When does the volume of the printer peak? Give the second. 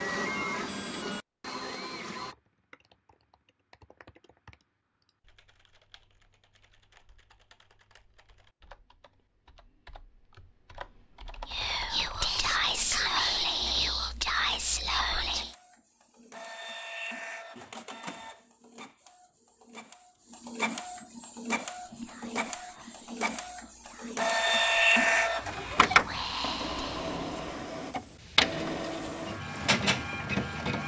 25 s.